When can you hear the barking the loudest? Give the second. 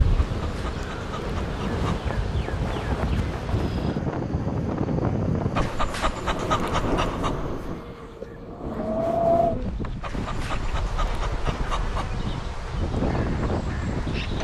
7 s.